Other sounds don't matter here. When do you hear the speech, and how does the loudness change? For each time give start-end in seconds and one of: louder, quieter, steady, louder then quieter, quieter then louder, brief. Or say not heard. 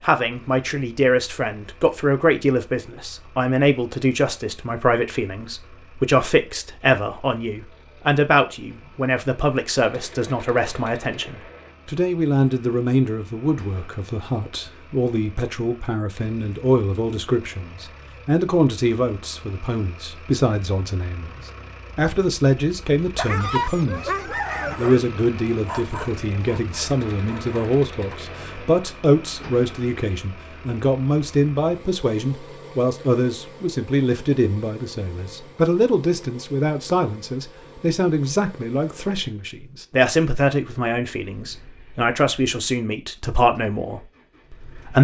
0.0-24.1 steady
24.8-44.9 steady.